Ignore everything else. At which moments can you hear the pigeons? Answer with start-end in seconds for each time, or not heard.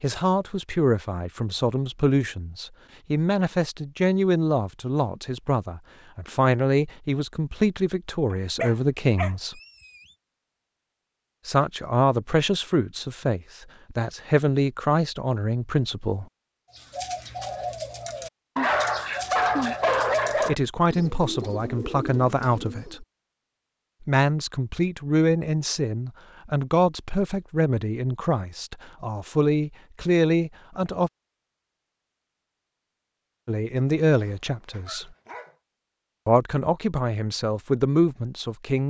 16.7-23.0.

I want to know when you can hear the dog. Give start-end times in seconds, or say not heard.
8.3-9.8, 18.6-20.6, 34.1-35.5.